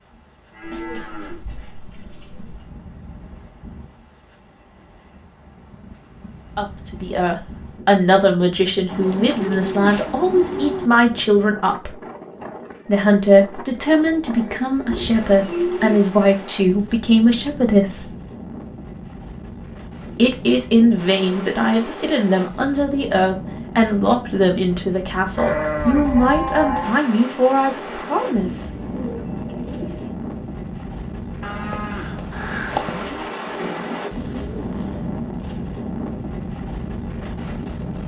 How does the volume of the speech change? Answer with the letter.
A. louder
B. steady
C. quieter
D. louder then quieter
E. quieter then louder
B.